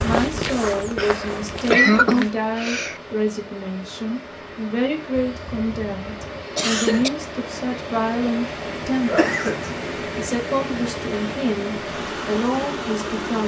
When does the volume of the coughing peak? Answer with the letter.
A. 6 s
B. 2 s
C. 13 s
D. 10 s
B.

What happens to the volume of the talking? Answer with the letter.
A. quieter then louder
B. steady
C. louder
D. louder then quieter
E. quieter
B.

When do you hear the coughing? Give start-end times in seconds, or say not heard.
0.9-3.0, 5.2-7.1, 9.1-9.7.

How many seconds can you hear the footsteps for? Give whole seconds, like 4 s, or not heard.
2 s.